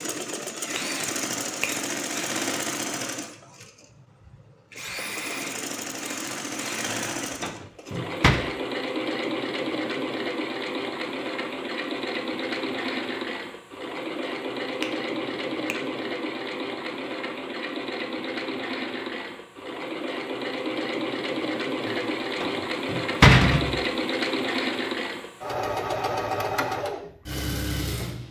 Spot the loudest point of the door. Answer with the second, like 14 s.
23 s.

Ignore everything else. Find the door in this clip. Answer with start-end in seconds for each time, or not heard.
6.8-8.4, 21.9-23.8.